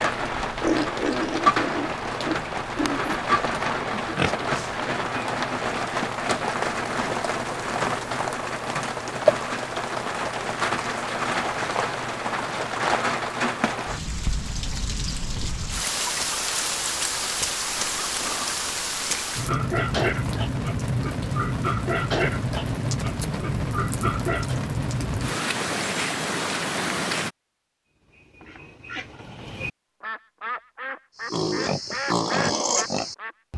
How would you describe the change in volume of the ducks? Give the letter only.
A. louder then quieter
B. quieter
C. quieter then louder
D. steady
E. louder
E.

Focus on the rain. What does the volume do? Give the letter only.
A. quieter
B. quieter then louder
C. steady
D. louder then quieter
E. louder
C.